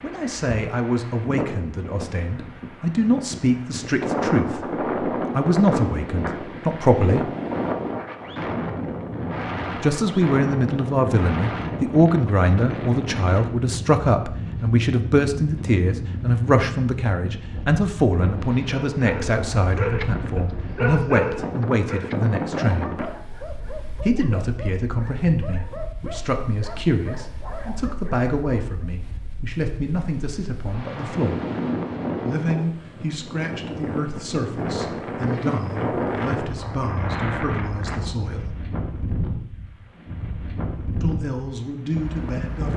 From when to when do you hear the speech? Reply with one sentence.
The speech can be heard from 0.0 to 7.3 s, from 9.8 to 22.9 s, from 24.0 to 31.4 s, from 32.2 to 38.5 s and from 41.0 to 42.7 s.